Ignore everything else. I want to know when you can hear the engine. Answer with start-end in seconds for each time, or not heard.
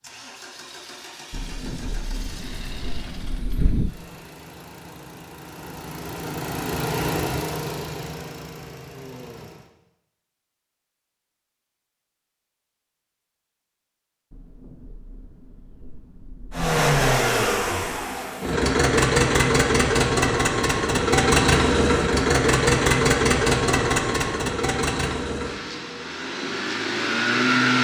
0.0-9.7, 16.5-27.8.